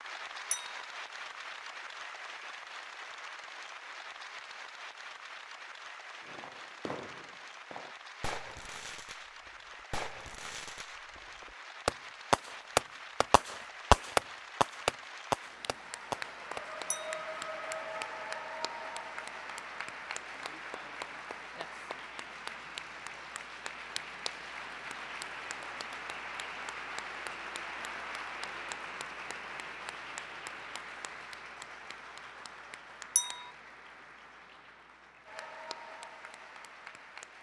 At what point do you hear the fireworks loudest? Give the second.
14 s.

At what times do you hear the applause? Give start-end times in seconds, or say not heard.
0.0-37.3.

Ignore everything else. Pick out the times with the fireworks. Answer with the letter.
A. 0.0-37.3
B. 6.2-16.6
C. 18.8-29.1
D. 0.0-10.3
B.